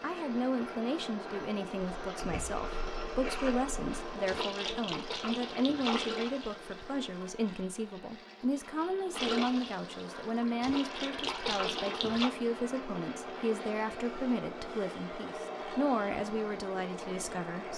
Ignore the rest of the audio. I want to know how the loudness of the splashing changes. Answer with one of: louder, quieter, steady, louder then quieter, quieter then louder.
louder.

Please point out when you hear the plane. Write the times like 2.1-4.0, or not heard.
0.0-17.7.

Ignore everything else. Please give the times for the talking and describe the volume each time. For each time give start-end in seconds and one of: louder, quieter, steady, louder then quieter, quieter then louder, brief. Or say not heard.
0.0-17.7 steady.